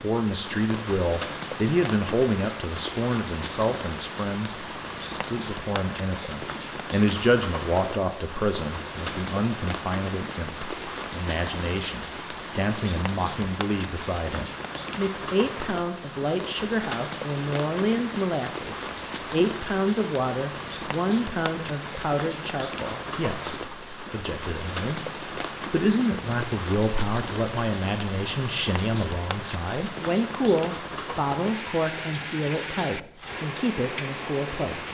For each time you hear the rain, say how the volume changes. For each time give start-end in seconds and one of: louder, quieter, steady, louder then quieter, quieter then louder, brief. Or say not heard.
0.0-34.8 steady.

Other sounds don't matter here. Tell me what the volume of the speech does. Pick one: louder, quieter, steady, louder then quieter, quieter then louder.
steady.